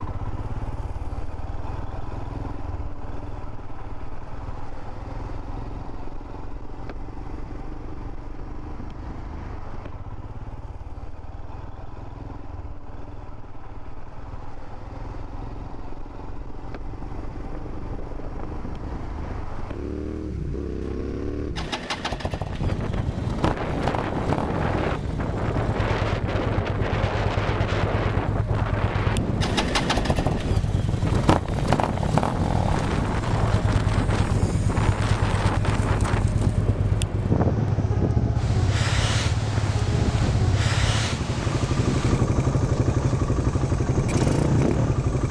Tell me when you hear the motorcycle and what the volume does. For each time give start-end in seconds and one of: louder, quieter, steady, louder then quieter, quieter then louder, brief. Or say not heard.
0.0-45.2 louder.